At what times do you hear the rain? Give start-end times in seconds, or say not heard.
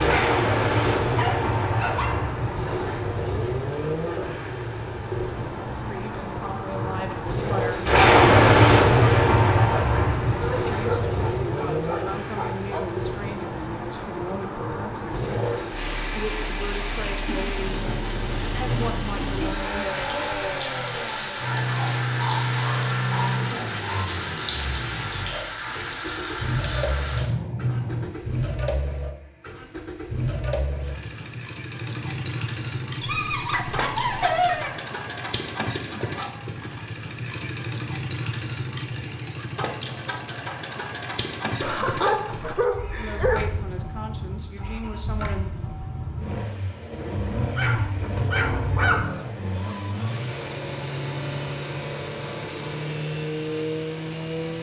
0.0-28.1.